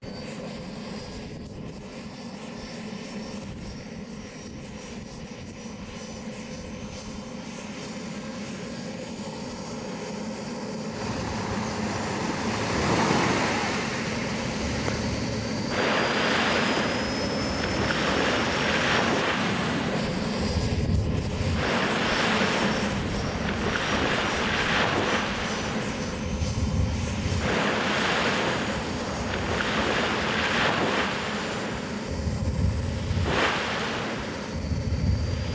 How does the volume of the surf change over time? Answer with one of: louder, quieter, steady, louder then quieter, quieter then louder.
steady.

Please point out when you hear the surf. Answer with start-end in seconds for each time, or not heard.
10.9-35.5.